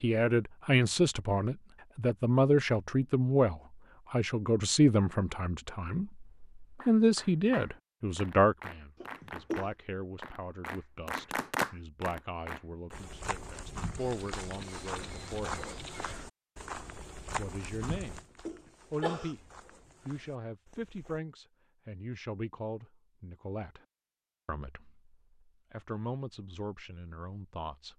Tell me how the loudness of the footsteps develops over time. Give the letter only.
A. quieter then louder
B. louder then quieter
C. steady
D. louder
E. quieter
E.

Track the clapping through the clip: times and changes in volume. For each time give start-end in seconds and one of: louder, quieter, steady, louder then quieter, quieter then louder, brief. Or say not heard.
6.8-13.1 louder.